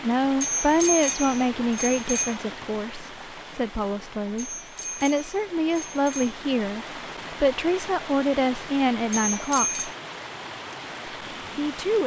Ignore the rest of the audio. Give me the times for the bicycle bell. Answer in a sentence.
The bicycle bell can be heard from 0.4 to 2.4 s, from 4.3 to 6.3 s and from 9.1 to 9.9 s.